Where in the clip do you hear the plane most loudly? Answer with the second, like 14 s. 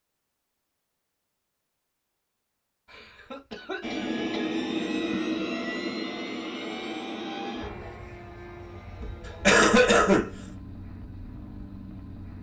5 s.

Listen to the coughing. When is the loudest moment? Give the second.
10 s.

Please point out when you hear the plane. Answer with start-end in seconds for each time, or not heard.
3.8-12.3.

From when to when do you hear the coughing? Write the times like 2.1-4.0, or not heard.
2.9-4.2, 9.0-10.3.